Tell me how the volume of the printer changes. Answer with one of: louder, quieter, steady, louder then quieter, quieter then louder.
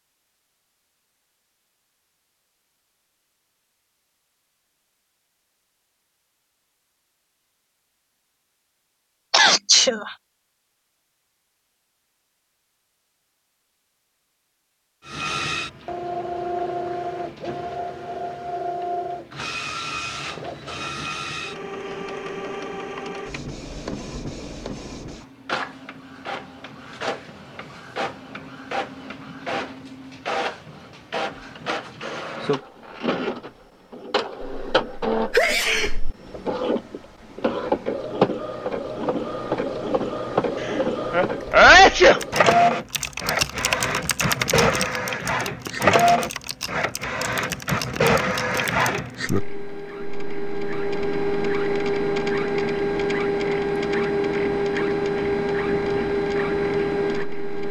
louder.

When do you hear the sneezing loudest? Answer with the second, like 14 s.
42 s.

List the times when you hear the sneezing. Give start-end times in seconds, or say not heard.
9.3-10.1, 34.4-36.1, 40.6-42.2.